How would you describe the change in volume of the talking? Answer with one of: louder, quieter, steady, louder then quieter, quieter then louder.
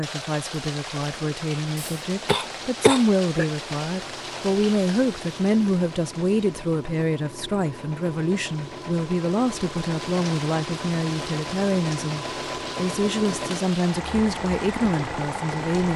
steady.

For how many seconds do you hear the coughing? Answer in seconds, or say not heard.
2 s.